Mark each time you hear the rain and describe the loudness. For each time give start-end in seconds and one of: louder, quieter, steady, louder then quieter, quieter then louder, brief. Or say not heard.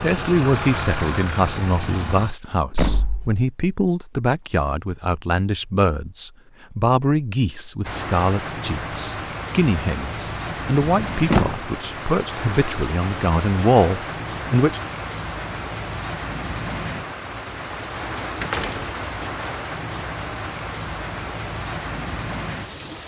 7.8-23.0 steady.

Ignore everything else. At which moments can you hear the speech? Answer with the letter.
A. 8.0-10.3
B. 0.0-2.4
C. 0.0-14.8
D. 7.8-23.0
C.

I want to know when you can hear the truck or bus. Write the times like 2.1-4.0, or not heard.
0.0-2.4.